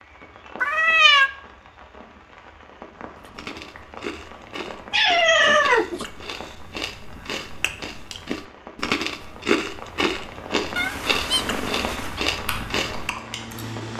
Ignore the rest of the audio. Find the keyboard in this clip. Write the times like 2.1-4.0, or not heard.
12.4-13.9.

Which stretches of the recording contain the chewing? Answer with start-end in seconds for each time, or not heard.
3.1-13.1.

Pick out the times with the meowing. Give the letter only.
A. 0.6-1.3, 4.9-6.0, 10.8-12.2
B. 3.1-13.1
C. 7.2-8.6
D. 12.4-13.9
A.